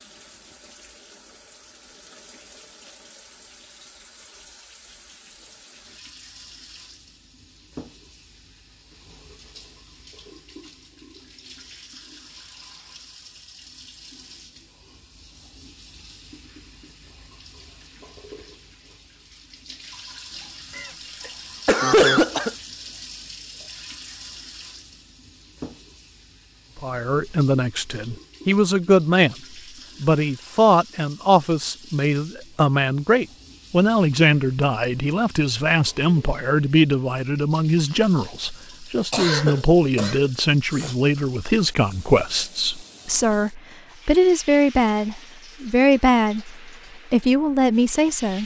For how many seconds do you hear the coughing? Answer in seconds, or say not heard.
4 s.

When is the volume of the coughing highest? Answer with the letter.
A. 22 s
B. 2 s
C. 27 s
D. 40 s
A.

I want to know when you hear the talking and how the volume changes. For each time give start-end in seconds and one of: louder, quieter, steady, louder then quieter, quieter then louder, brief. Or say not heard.
26.8-29.4 brief
30.0-48.4 steady.